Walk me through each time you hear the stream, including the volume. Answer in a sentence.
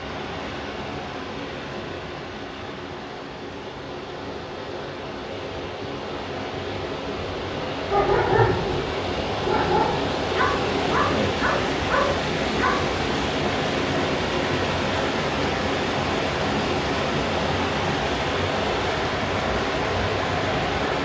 The stream can be heard from 0.0 to 21.0 s, getting louder.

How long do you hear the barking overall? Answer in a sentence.
The barking can be heard for 5 seconds in total.